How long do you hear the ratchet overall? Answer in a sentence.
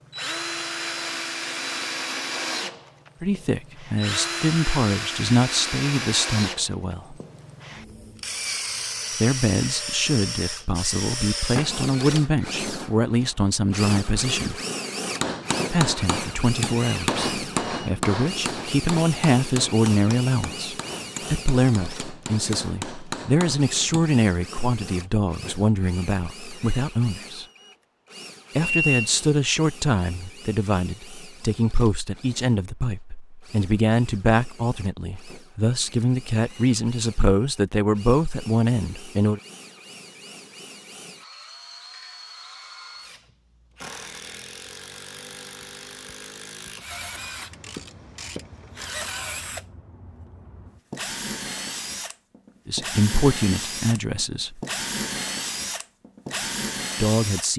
You can hear the ratchet for 2 seconds altogether.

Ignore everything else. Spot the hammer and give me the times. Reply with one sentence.
The hammer can be heard from 15.0 to 24.1 s.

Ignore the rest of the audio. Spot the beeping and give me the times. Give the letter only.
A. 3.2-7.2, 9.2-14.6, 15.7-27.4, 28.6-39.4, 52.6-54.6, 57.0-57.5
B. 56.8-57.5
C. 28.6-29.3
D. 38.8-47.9
C.